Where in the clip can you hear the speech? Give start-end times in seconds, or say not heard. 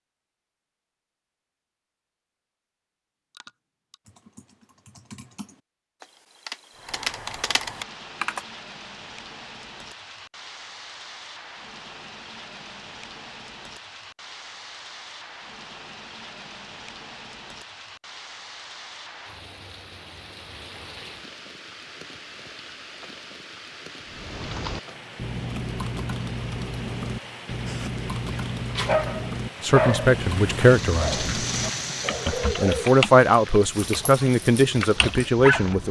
29.6-31.2, 32.2-35.8.